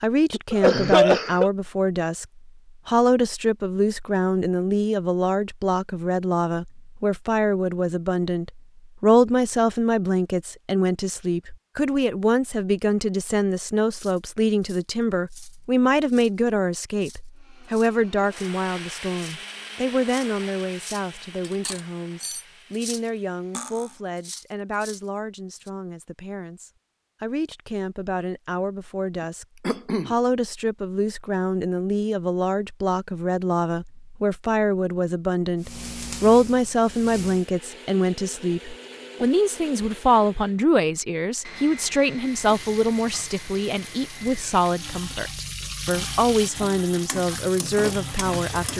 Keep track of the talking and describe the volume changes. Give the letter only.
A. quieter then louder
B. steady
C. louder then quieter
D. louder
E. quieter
A.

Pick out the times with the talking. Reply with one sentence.
You can hear the talking from 0.0 to 48.7 s.